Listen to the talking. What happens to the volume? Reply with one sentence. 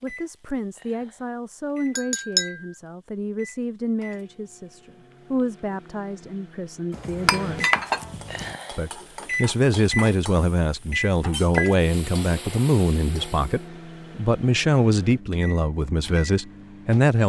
The loudness of the talking goes up.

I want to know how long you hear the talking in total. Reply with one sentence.
The talking can be heard for 16 seconds in total.